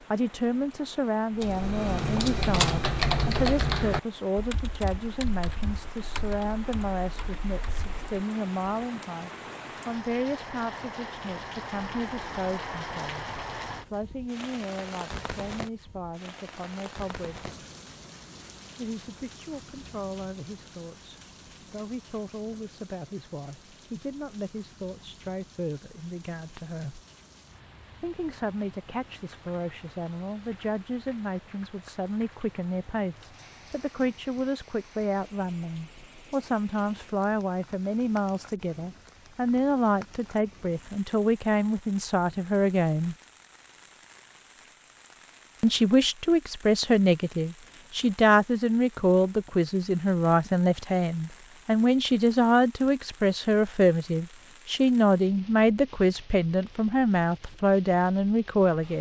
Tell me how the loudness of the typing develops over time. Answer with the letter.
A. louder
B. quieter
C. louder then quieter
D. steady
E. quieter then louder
B.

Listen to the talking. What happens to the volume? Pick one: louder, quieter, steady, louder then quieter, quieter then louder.
quieter then louder.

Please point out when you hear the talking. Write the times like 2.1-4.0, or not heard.
0.1-17.5, 18.8-27.0, 28.0-43.1, 45.6-58.9.